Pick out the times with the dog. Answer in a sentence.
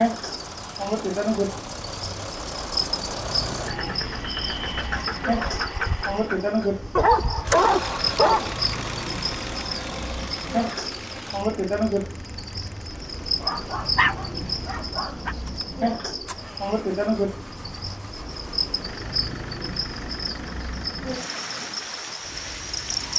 You can hear the dog from 7.0 to 8.6 s and from 13.4 to 15.3 s.